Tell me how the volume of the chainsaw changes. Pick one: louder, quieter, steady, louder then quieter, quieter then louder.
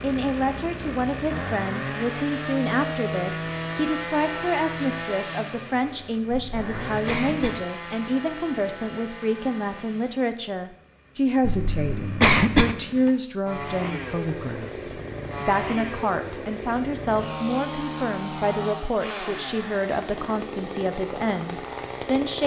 quieter then louder.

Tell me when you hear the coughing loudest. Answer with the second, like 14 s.
12 s.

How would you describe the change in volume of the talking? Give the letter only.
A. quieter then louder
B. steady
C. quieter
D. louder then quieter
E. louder
B.